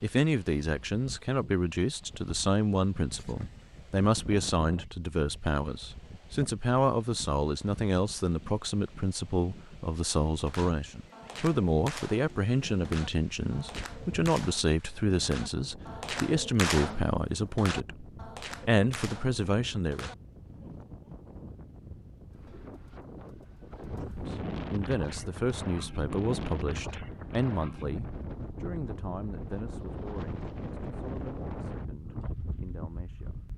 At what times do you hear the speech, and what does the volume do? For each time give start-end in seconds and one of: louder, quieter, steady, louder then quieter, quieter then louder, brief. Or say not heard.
0.0-20.1 steady
24.0-33.5 quieter.